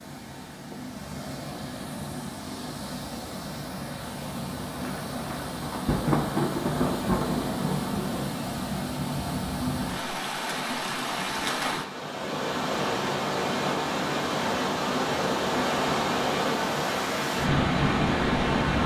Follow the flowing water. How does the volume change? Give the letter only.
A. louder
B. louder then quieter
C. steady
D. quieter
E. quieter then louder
A.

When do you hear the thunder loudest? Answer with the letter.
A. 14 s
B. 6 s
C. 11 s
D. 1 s
B.